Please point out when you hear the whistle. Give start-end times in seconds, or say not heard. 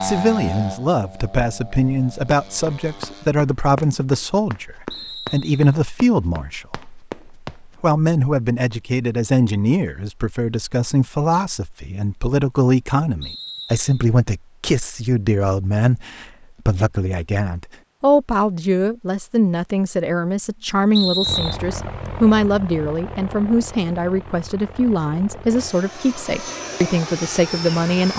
4.9-5.8, 13.2-14.1, 20.9-21.6.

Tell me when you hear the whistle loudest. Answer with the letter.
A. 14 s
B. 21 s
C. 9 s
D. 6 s
B.